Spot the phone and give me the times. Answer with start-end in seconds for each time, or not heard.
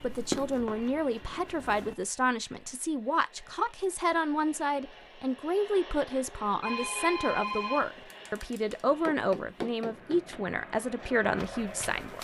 6.6-8.8.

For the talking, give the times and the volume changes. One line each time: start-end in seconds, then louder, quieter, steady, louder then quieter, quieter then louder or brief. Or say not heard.
0.0-12.1 steady.